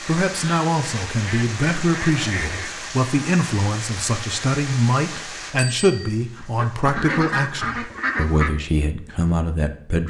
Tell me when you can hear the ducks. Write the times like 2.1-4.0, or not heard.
0.3-2.8, 6.3-8.5.